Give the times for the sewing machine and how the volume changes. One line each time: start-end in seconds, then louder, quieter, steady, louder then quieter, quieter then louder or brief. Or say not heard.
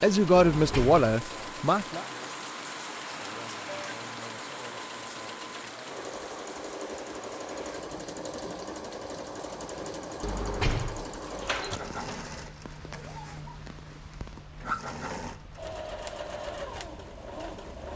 0.0-17.9 louder.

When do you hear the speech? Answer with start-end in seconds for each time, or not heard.
0.0-2.0.